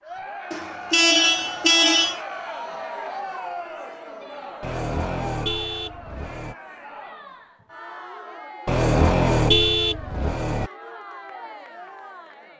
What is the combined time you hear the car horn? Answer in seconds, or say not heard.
6 s.